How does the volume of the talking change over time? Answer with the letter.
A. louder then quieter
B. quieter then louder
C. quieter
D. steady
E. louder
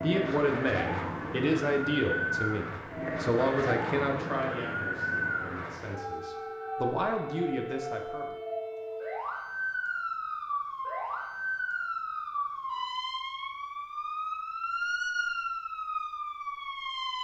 B.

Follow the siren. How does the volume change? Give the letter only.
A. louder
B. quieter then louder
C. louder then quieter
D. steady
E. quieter
D.